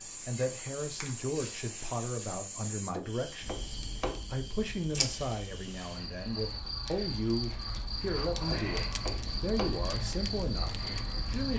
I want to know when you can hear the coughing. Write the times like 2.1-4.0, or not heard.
not heard.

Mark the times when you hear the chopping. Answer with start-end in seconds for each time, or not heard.
2.9-4.2, 8.4-9.8.